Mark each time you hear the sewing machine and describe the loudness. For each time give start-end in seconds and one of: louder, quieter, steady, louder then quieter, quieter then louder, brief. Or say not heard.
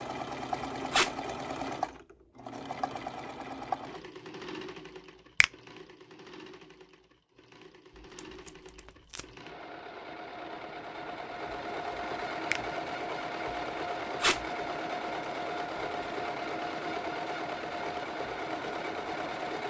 0.0-19.6 quieter then louder.